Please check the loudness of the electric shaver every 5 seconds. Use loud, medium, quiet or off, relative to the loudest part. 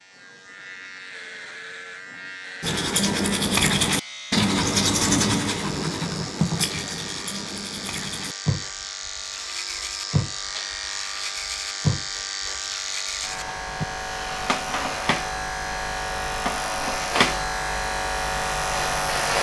quiet, medium, medium, loud.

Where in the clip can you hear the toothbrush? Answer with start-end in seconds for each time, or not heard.
2.6-13.8.